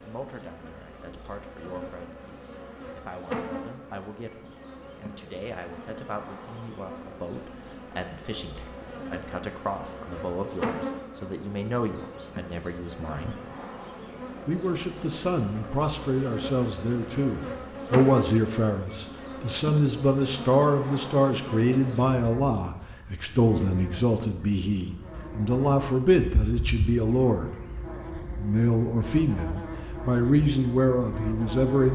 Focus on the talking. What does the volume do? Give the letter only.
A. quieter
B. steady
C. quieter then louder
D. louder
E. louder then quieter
D.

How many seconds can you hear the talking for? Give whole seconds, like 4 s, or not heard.
30 s.